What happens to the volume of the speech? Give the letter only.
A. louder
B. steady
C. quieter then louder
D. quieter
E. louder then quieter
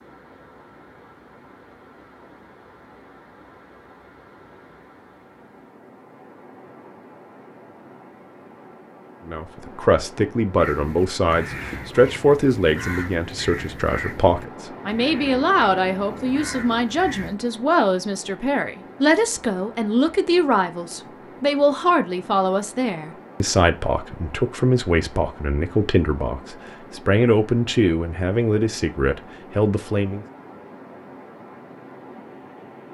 B.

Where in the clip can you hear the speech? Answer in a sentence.
You can hear the speech from 9.2 to 30.2 s.